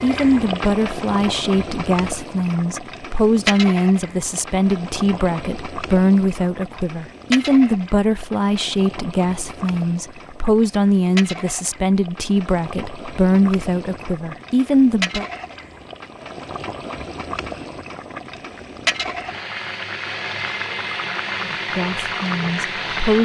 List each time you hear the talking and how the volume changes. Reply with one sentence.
You can hear the talking from 0.0 to 15.2 s, at a steady volume; and briefly from 21.6 to 23.2 s.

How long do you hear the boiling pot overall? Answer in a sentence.
You can hear the boiling pot for 23 seconds altogether.